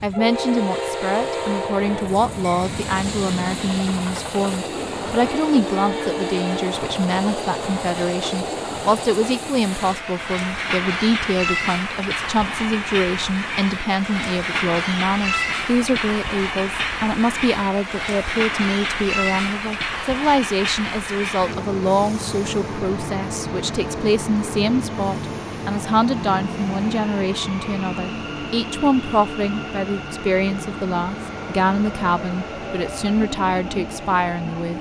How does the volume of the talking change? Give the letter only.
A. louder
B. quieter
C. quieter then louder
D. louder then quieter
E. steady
E.